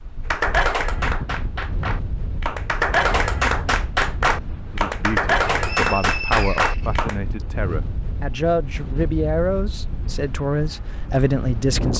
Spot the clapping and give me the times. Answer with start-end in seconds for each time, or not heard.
0.3-7.2.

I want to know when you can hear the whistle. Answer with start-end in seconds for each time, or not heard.
5.5-7.5.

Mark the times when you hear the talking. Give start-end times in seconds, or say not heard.
4.7-11.9.